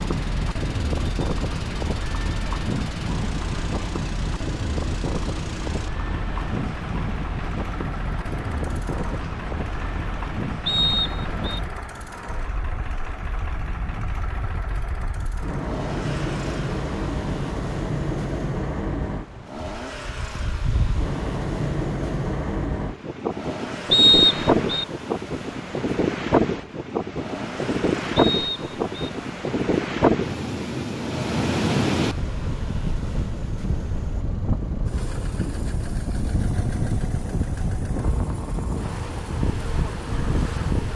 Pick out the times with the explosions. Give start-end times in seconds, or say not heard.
not heard.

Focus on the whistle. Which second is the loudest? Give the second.
24 s.